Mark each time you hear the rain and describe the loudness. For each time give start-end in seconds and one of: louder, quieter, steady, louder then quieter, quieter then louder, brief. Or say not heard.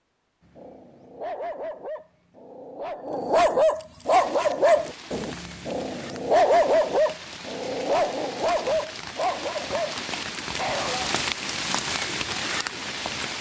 4.0-13.3 louder.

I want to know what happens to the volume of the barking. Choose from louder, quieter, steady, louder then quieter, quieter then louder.
louder then quieter.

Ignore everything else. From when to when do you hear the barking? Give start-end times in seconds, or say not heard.
0.5-11.1.